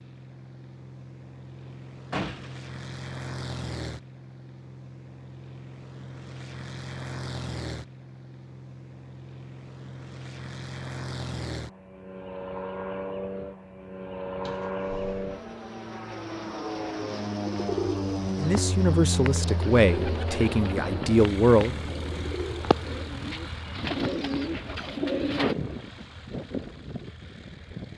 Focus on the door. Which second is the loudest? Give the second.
2 s.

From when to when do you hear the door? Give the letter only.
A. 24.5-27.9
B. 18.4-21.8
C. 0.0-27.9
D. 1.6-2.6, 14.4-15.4
D.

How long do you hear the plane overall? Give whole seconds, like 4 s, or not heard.
28 s.